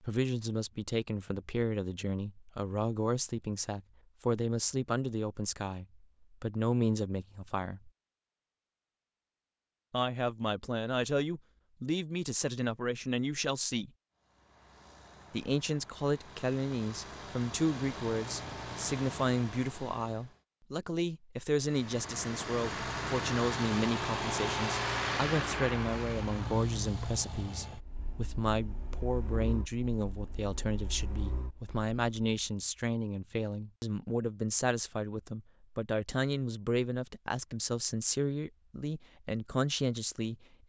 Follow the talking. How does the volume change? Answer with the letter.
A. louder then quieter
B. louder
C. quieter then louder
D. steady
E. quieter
D.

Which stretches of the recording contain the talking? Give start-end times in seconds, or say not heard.
0.0-7.9, 9.9-13.9, 15.3-40.4.